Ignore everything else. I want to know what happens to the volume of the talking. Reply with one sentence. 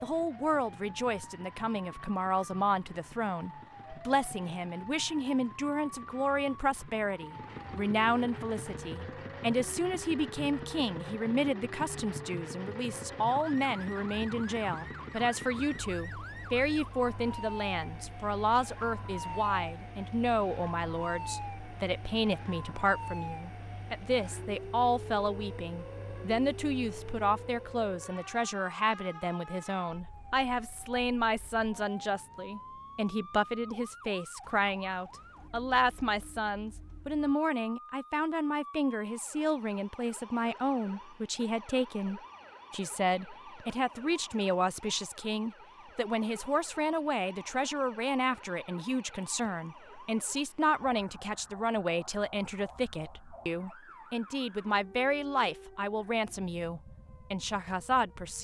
The volume of the talking stays about the same.